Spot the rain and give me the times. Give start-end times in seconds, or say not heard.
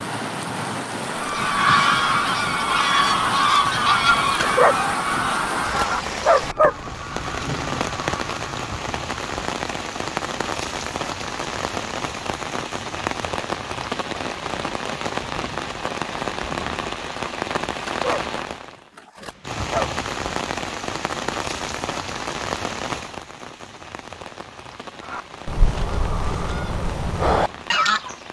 0.0-28.2.